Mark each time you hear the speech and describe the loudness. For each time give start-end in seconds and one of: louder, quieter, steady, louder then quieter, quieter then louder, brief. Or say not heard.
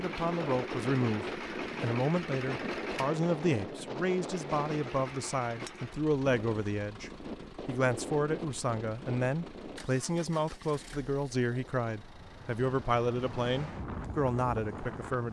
0.0-15.2 steady.